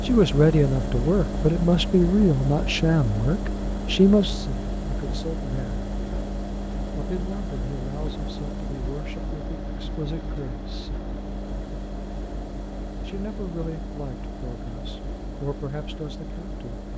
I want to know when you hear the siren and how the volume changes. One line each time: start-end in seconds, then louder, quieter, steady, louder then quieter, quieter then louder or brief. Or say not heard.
not heard.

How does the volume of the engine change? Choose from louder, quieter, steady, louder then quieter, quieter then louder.
quieter.